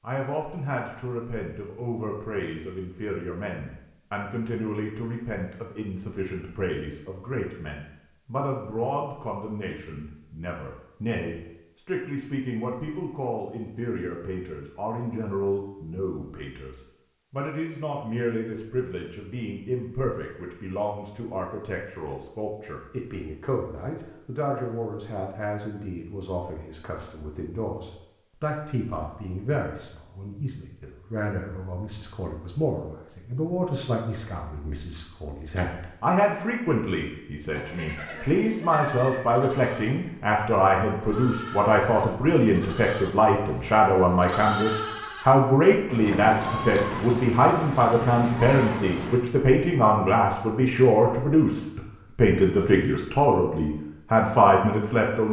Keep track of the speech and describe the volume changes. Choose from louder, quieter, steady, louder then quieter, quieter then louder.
louder.